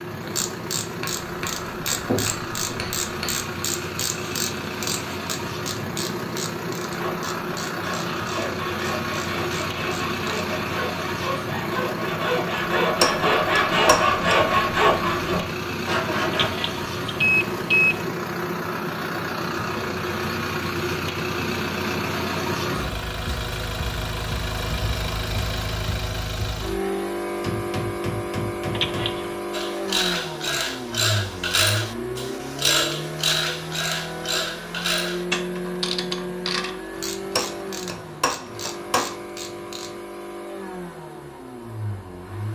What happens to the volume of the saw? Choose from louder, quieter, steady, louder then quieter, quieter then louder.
louder.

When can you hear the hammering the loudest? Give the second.
13 s.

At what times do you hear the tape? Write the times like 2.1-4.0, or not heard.
not heard.